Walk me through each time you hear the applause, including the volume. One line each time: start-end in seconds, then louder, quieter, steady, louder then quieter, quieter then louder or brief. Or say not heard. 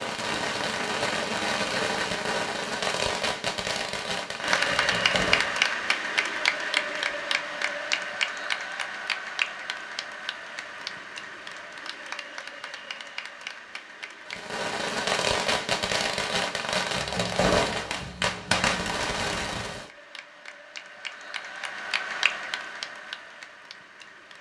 4.4-14.4 quieter
19.9-24.3 louder then quieter.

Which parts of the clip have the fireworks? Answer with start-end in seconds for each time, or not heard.
0.0-5.7, 14.2-19.9.